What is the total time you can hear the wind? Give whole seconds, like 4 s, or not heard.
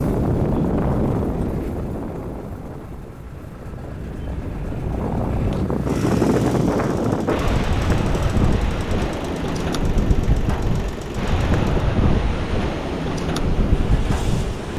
15 s.